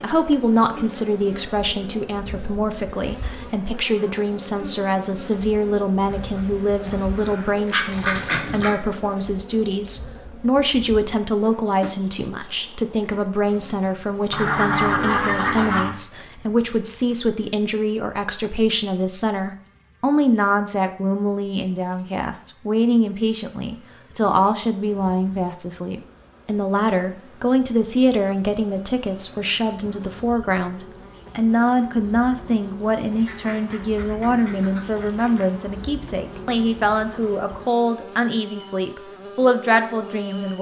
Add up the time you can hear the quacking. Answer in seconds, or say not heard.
7 s.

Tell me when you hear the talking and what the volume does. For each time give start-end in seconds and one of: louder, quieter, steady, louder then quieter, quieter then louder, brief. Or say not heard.
0.0-40.5 steady.